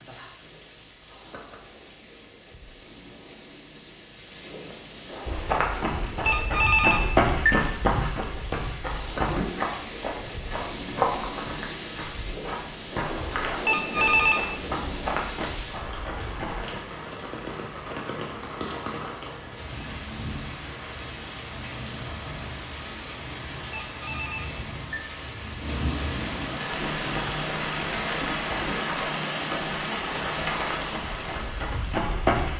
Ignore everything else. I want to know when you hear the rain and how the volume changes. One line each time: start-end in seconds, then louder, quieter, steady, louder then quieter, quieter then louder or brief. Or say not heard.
0.0-32.5 louder.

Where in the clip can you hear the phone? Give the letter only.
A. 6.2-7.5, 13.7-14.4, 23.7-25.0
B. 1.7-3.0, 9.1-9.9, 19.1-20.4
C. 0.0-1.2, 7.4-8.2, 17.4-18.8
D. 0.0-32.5
A.